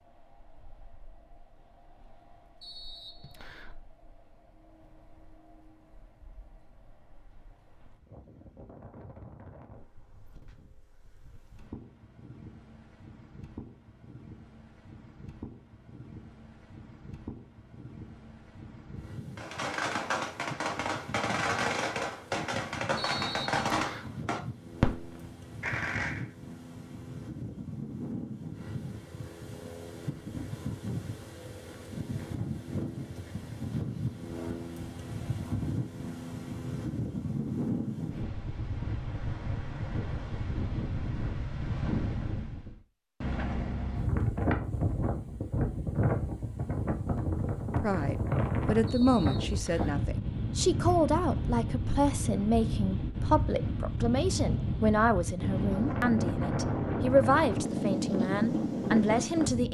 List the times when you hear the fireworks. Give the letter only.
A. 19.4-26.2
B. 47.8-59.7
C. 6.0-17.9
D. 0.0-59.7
A.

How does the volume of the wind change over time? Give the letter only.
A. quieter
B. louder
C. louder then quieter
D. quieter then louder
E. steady
B.